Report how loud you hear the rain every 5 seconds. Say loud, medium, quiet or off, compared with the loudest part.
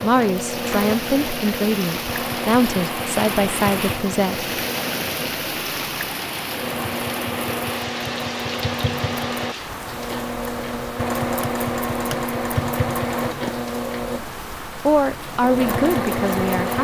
loud, loud, medium, medium.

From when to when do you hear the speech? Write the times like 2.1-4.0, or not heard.
0.0-4.5, 14.7-16.8.